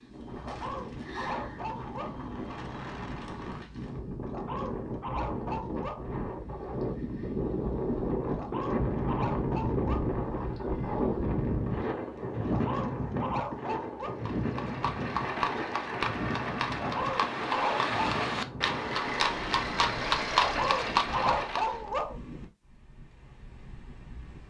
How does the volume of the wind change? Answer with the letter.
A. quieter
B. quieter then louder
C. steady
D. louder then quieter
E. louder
D.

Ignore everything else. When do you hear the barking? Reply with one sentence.
You can hear the barking from 0.3 to 2.2 s, from 4.2 to 6.1 s, from 8.2 to 10.2 s, from 12.4 to 14.2 s, from 16.7 to 17.9 s and from 20.4 to 22.2 s.